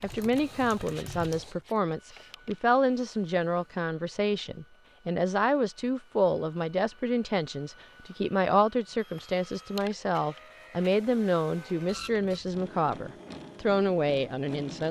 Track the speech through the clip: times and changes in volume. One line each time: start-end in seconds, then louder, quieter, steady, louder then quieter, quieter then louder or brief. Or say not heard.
0.0-14.8 steady.